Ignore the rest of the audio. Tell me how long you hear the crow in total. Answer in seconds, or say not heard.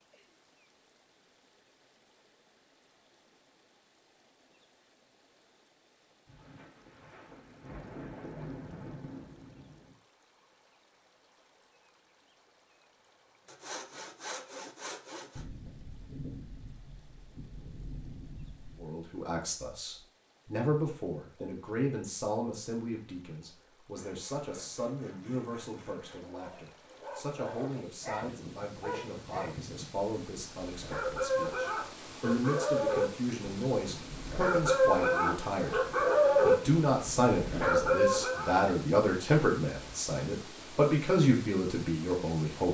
not heard.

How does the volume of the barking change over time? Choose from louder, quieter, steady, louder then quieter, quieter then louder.
louder.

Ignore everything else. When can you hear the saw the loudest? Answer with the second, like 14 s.
14 s.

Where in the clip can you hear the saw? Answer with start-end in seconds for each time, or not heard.
13.4-15.4, 23.9-26.2.